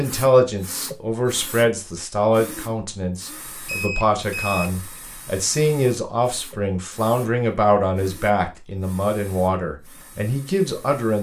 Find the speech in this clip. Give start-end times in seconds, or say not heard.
0.0-11.1.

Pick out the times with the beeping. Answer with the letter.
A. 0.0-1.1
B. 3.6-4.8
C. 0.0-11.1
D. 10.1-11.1
B.